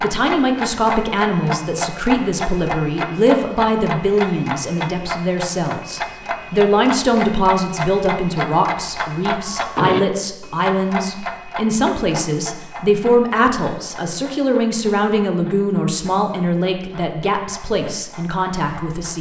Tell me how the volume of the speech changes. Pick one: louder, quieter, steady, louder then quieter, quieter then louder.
steady.